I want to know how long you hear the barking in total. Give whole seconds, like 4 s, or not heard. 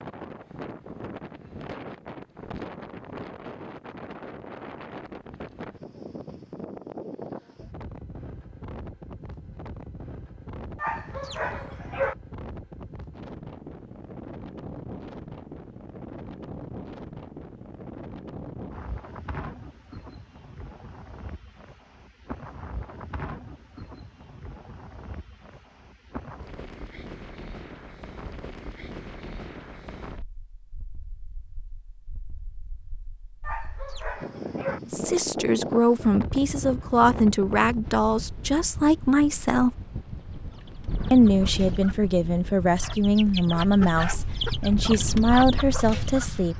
3 s.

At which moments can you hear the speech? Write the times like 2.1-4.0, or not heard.
34.9-39.8, 41.1-46.5.